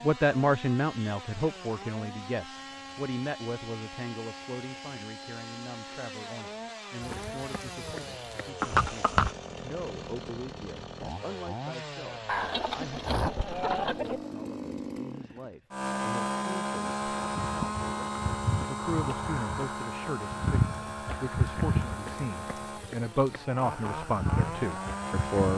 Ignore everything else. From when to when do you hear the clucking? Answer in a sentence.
The clucking can be heard from 12.2 to 14.3 s.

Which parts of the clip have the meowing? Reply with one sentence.
The meowing can't be heard in this clip.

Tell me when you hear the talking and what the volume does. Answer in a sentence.
You can hear the talking from 0.0 to 25.5 s, getting quieter then louder.